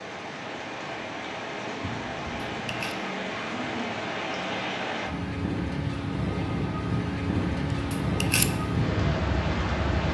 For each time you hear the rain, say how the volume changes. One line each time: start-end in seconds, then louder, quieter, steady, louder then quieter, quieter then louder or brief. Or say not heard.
0.0-10.1 louder.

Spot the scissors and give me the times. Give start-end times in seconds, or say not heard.
1.8-3.0, 7.3-8.6.